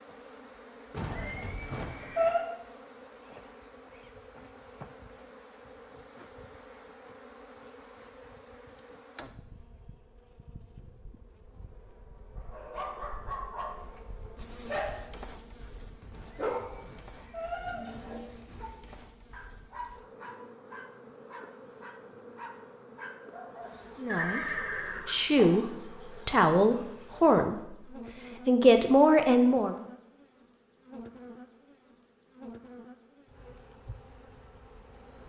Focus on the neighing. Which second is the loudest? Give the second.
2 s.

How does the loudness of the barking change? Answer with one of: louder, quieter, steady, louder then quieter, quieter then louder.
quieter.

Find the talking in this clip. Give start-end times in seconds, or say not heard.
24.0-29.8.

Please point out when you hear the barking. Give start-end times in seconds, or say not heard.
12.3-23.8.